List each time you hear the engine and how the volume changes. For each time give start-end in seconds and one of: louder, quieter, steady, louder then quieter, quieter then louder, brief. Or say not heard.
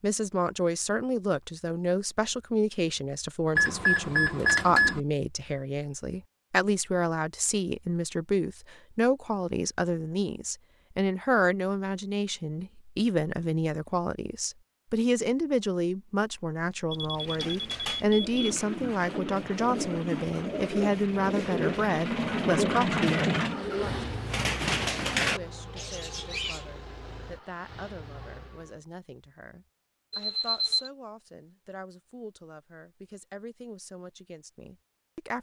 18.2-28.8 louder then quieter.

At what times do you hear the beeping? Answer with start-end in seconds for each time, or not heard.
3.5-5.0, 16.9-18.4, 30.1-30.9.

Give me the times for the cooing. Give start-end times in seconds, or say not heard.
17.1-26.6.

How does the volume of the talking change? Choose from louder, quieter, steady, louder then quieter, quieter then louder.
quieter.